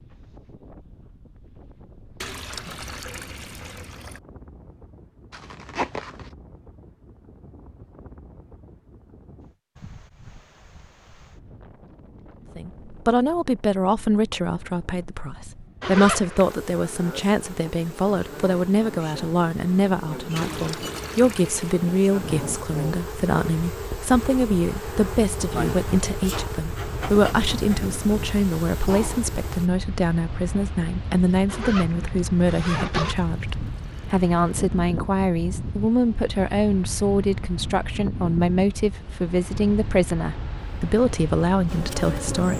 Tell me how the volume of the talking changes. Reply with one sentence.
The loudness of the talking stays about the same.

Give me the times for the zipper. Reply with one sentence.
The zipper can be heard from 5.3 to 6.3 s, from 15.8 to 16.6 s and from 31.4 to 33.1 s.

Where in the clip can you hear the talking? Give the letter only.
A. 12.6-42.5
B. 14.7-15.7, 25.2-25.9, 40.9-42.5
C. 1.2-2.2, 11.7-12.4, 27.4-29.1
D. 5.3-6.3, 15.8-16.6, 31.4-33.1
A.